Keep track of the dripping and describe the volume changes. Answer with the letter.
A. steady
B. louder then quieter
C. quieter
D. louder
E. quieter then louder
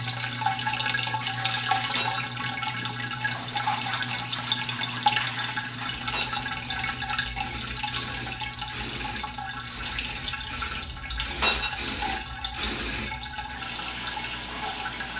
C.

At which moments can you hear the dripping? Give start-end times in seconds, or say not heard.
0.0-15.1.